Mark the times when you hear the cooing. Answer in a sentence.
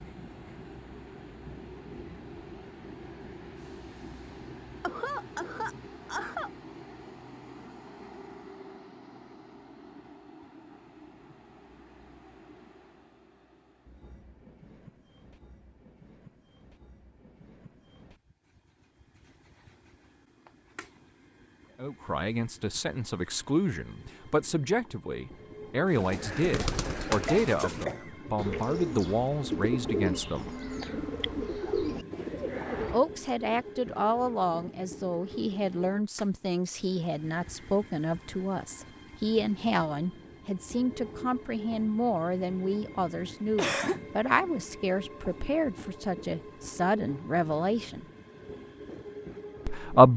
You can hear the cooing from 25.9 to 33.0 s.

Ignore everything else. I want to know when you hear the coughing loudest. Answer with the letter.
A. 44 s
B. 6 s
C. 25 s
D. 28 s
A.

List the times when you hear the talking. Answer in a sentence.
You can hear the talking from 21.8 to 30.5 s, from 32.9 to 48.0 s and from 49.6 to 50.1 s.